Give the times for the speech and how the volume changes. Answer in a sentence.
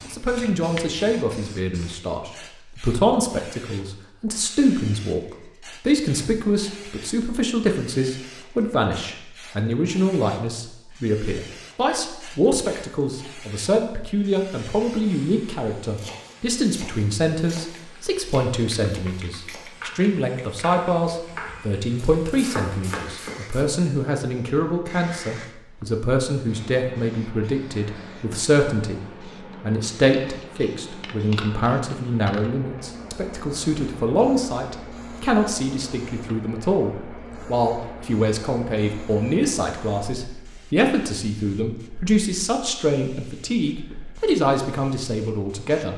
You can hear the speech from 0.1 to 29.0 s, at a steady volume; and from 29.6 to 45.9 s, at a steady volume.